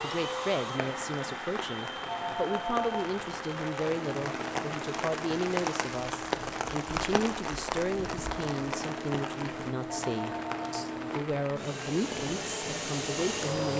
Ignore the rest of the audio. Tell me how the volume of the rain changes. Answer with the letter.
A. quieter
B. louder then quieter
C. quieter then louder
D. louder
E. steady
B.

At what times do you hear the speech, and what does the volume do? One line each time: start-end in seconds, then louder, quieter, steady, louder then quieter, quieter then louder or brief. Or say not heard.
0.0-13.7 steady.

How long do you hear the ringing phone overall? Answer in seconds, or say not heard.
2 s.